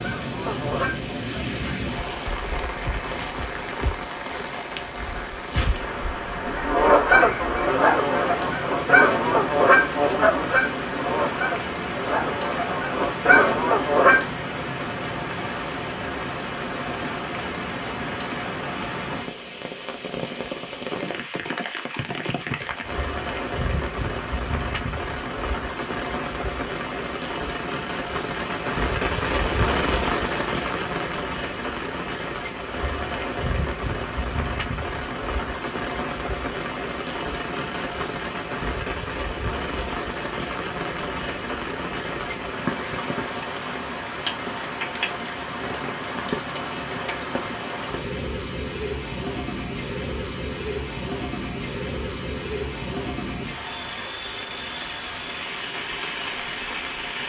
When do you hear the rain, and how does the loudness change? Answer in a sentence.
The rain can be heard from 0.0 to 57.2 s, at a steady volume.